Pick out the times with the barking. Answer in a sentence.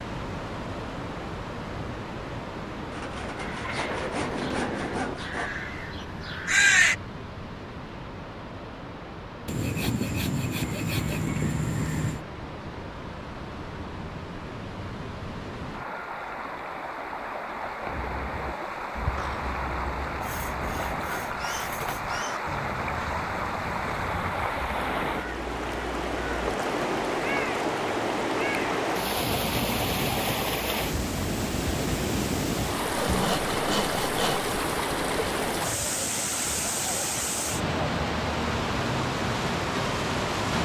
The barking can't be heard in this clip.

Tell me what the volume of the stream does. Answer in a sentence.
The volume of the stream goes up.